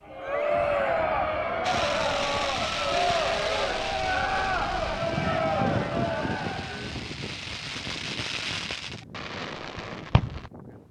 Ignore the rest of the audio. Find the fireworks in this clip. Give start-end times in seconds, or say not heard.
1.6-10.5.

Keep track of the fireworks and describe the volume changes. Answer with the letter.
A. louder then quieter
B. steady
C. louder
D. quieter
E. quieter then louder
E.